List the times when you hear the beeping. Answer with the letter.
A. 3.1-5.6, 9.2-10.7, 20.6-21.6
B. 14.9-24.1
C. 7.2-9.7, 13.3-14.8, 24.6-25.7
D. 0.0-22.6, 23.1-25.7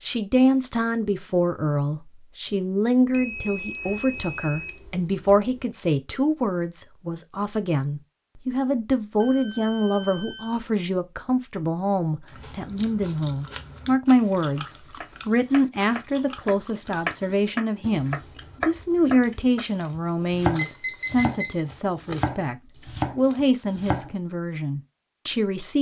A.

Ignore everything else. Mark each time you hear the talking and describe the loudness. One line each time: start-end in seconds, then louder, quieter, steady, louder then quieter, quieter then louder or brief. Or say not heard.
0.0-22.6 steady
23.1-25.7 brief.